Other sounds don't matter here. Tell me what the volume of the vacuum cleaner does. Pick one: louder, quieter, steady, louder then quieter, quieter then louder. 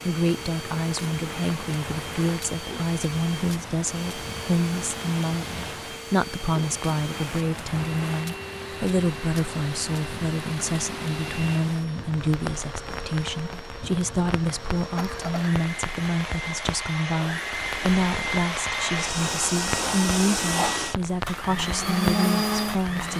louder.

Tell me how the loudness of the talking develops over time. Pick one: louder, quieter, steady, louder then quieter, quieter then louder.
steady.